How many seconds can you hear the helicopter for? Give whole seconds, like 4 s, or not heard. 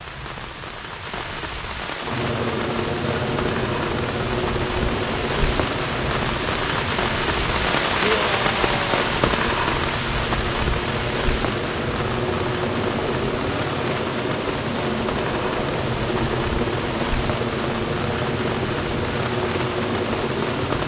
19 s.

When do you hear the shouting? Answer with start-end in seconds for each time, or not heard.
8.0-9.0.